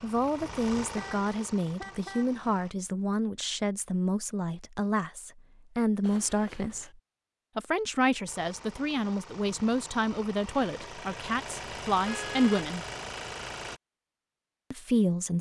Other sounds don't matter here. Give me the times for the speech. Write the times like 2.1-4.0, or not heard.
0.0-6.9, 7.5-12.8, 14.7-15.3.